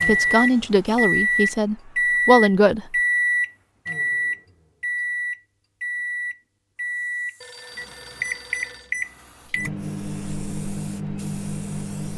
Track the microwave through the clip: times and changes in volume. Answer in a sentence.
You can hear the microwave from 0.0 to 12.1 s, getting quieter.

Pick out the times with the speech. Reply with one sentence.
The speech can be heard from 0.0 to 3.0 s.